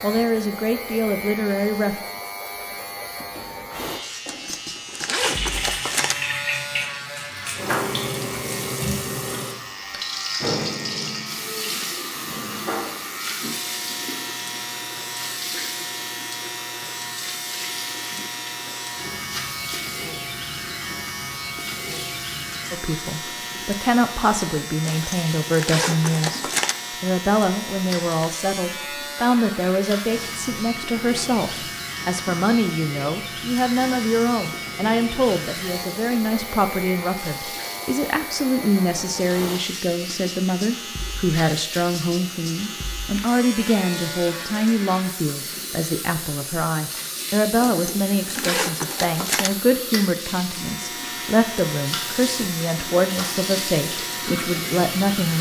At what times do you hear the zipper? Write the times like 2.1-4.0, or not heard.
4.2-6.2, 24.9-26.8, 47.6-49.5.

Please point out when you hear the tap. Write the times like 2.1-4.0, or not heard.
5.2-55.3.